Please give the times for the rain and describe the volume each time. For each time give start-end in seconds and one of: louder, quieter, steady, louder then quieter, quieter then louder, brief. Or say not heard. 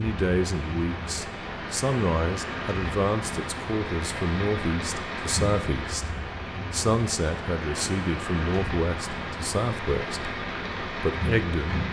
0.0-11.8 steady.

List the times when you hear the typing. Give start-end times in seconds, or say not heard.
not heard.